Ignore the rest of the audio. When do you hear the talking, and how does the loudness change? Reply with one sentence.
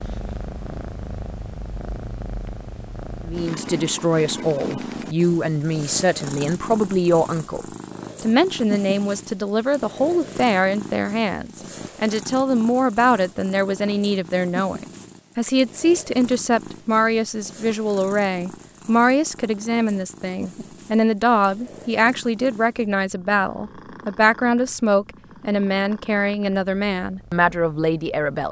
The talking can be heard from 3.2 to 28.4 s, at a steady volume.